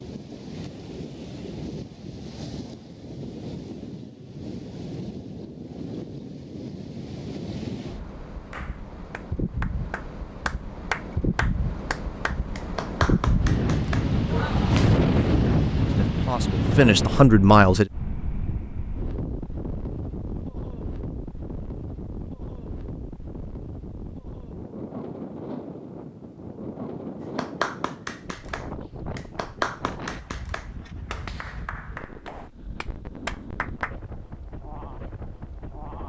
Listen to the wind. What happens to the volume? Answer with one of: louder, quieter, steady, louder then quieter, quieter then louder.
louder then quieter.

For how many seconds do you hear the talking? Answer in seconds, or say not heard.
2 s.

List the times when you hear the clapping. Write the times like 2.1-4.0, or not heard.
8.5-15.1, 27.4-34.0.